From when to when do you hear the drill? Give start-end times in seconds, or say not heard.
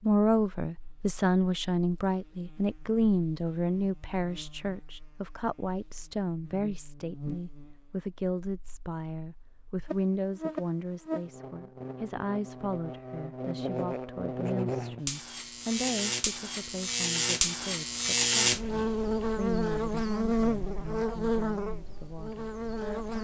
not heard.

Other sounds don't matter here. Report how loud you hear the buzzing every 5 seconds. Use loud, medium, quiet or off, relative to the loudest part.
quiet, quiet, medium, loud, loud.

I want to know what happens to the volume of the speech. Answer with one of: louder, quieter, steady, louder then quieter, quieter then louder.
quieter.